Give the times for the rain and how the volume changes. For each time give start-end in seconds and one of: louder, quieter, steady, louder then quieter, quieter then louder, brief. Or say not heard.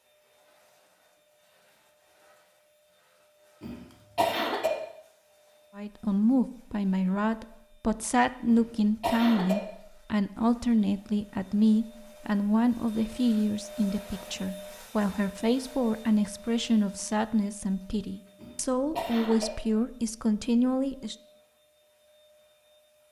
not heard.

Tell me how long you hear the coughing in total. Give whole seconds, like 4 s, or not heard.
3 s.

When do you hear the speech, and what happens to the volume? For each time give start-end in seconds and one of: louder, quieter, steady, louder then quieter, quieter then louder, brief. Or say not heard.
5.8-21.1 steady.